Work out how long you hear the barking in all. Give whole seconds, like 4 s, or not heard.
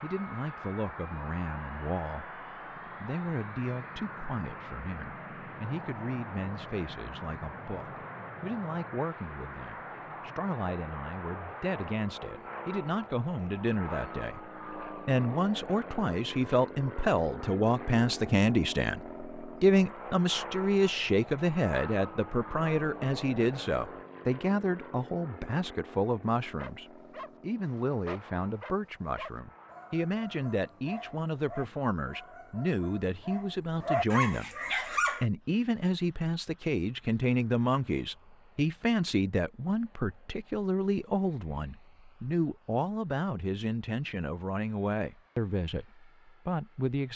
8 s.